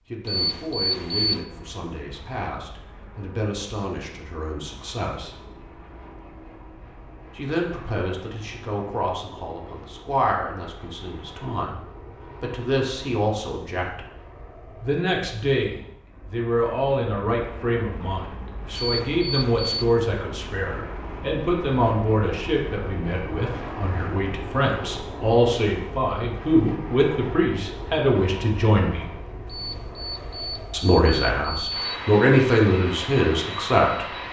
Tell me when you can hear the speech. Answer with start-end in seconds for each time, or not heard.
0.1-5.3, 7.3-14.0, 14.8-29.1, 30.7-34.1.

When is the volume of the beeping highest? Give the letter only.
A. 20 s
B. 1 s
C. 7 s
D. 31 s
B.